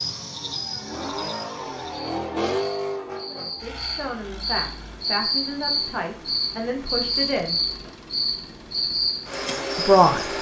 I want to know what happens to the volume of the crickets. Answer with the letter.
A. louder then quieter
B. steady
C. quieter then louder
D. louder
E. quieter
D.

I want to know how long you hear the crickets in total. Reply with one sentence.
The crickets can be heard for 10 seconds in total.